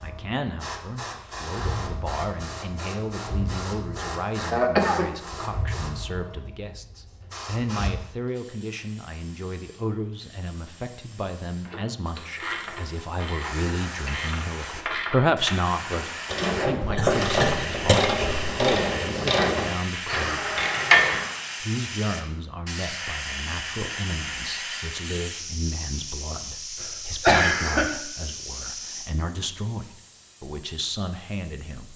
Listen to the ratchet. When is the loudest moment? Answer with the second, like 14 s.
21 s.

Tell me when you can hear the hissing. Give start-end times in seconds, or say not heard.
0.0-31.9.